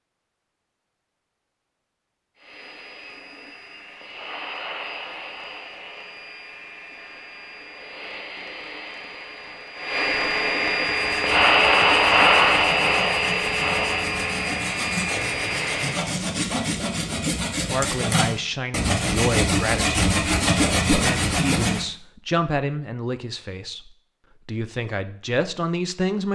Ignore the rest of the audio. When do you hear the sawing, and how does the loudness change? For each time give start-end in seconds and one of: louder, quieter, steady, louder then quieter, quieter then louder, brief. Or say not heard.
10.8-21.9 louder.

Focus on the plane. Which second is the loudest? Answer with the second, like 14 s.
12 s.